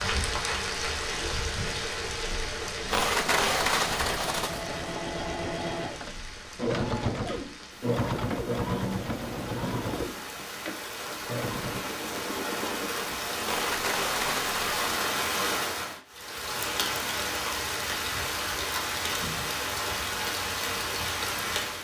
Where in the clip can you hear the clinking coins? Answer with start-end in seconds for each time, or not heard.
2.9-4.7, 13.4-14.8.